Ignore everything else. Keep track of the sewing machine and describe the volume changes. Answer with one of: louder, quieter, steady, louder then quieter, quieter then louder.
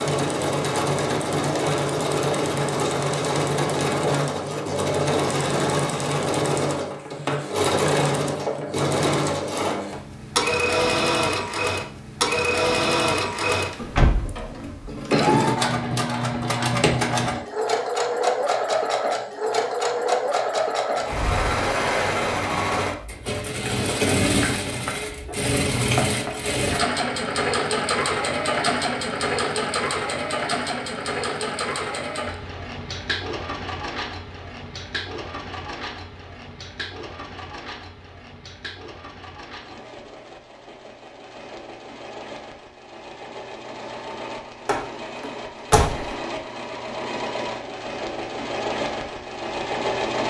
quieter.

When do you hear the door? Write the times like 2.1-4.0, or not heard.
13.8-14.9, 44.6-46.1.